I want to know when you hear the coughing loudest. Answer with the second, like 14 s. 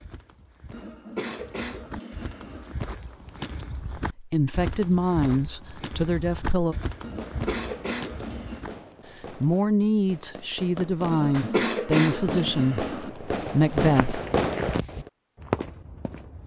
12 s.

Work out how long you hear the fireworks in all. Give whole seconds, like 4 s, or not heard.
8 s.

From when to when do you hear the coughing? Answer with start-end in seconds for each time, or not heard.
0.7-2.8, 7.0-8.7, 11.1-13.1.